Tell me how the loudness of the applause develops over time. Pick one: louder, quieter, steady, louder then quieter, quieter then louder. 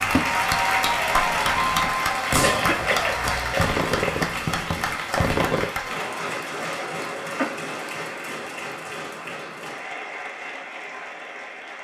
quieter.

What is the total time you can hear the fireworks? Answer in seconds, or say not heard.
6 s.